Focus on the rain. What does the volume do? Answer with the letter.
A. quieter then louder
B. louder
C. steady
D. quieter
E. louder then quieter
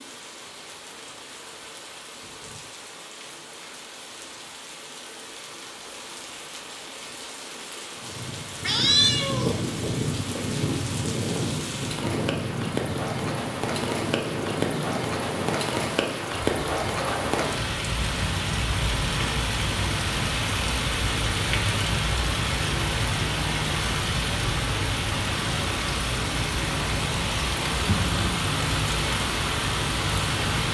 B.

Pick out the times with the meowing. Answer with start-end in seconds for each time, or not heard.
8.6-9.5.